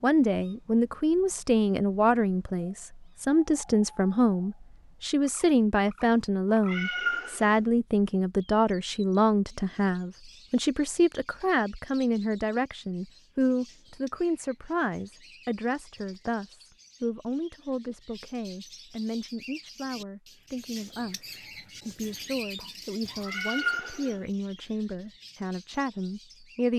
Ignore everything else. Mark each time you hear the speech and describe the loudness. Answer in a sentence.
The speech can be heard from 0.0 to 26.7 s, getting quieter.